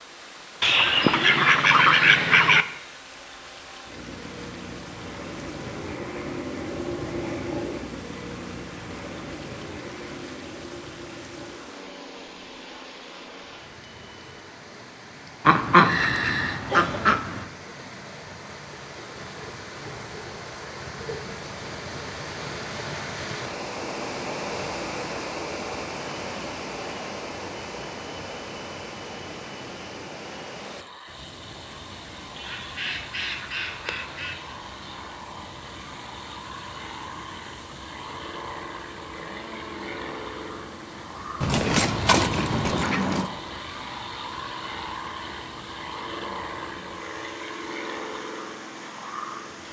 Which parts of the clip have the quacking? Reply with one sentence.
The quacking can be heard from 0.6 to 2.6 s, from 15.4 to 17.4 s, from 32.4 to 34.5 s and from 41.4 to 43.3 s.